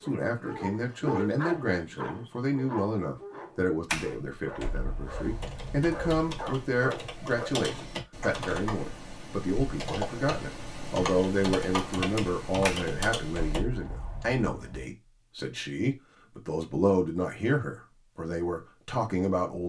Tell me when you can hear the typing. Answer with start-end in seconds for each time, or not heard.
5.0-13.7.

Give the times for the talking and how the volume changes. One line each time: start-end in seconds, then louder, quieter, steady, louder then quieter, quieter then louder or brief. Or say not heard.
0.0-19.6 steady.